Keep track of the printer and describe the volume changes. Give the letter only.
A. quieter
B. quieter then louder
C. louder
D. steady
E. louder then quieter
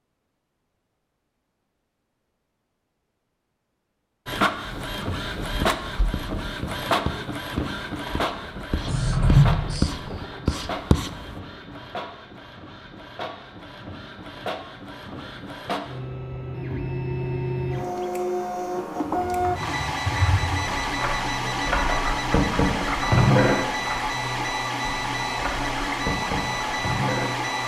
B.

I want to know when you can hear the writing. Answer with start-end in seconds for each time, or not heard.
5.5-11.3.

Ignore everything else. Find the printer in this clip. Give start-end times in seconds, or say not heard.
4.2-27.6.